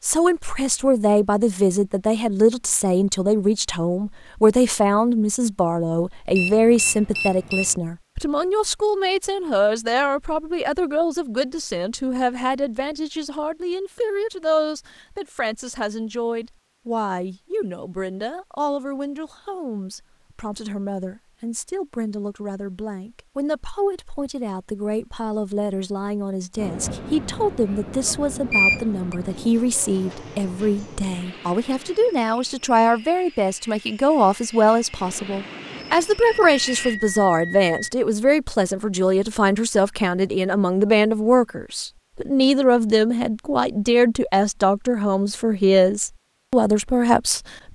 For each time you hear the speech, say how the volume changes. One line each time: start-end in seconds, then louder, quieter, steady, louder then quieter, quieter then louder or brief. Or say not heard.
0.0-47.5 quieter then louder.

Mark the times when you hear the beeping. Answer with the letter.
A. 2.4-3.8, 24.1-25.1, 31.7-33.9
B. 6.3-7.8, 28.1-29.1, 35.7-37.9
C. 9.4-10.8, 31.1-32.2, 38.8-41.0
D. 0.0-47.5
B.